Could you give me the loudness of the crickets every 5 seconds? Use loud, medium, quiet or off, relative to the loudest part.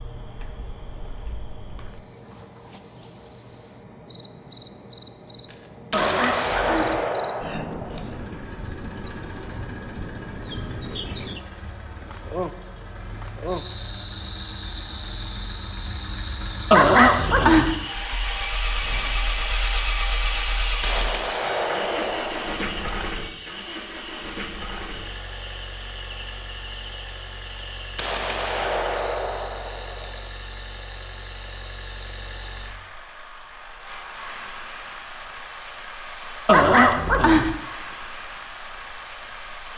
loud, loud, loud, loud, medium, medium, medium, medium.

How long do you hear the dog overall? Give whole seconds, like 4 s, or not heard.
3 s.